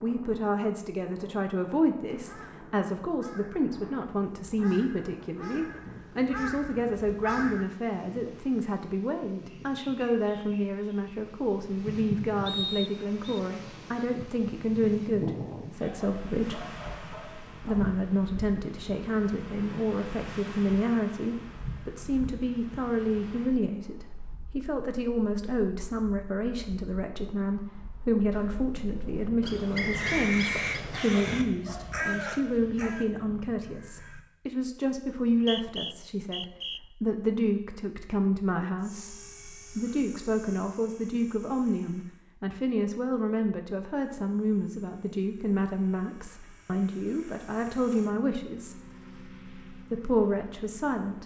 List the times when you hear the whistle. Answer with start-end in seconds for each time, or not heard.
12.4-13.4, 29.7-31.0, 35.0-36.8.